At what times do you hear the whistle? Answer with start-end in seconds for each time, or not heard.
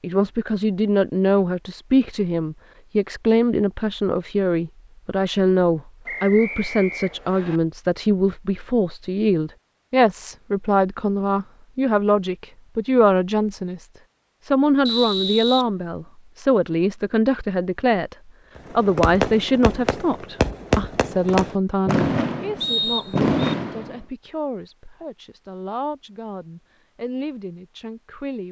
6.0-7.6, 14.8-15.7, 22.6-23.4.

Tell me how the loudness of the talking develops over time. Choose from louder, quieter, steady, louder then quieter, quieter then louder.
quieter.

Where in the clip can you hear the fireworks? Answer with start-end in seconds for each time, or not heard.
18.6-24.0.